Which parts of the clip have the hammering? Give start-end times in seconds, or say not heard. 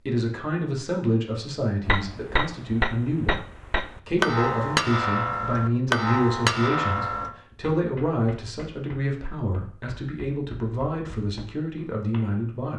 1.9-12.4.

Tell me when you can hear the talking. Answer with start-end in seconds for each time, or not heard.
0.1-12.7.